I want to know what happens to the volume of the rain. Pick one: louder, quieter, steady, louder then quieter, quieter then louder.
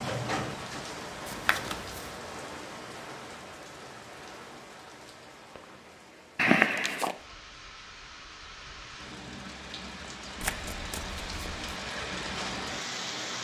quieter then louder.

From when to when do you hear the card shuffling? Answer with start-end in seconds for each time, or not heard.
1.2-2.1, 6.3-7.2, 10.4-11.7.